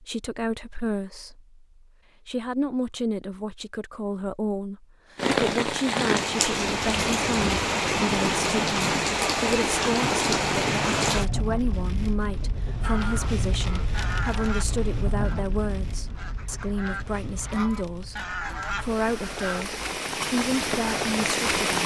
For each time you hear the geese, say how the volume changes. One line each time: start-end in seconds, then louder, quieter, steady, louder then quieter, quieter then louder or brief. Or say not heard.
12.8-19.8 quieter then louder.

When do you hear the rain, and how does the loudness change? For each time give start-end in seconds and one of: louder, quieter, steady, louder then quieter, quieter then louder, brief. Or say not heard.
5.2-21.8 quieter then louder.